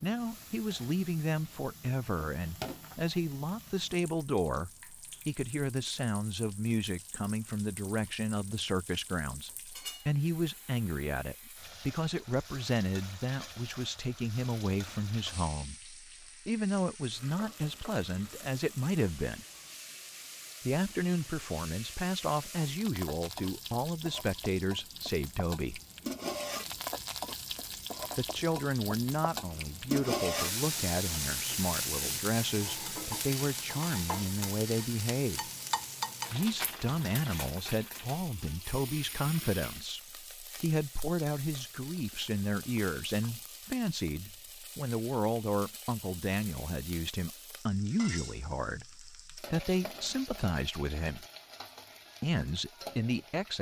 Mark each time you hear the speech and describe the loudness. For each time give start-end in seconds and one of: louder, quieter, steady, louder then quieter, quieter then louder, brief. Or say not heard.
0.0-19.4 steady
20.6-25.8 steady
28.1-35.5 steady
36.3-51.2 steady
52.2-53.5 brief.